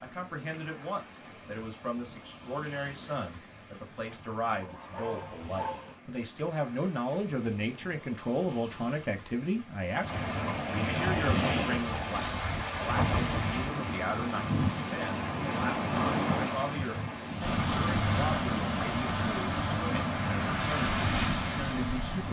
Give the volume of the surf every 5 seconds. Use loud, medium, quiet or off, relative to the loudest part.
quiet, quiet, loud, loud, loud.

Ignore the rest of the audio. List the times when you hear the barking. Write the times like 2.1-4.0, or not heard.
4.5-6.0.